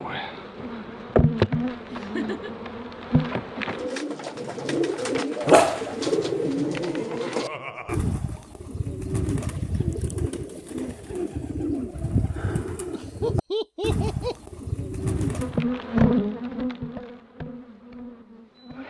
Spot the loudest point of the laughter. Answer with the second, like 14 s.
13 s.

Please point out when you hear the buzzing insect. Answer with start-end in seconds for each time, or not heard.
0.0-3.9, 15.2-18.8.